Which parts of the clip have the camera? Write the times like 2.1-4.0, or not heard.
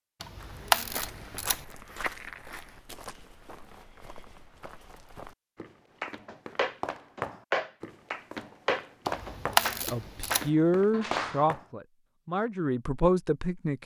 0.2-1.6, 9.1-10.5.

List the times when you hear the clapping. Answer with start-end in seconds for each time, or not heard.
6.0-11.4.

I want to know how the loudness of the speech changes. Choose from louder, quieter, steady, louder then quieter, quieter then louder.
quieter then louder.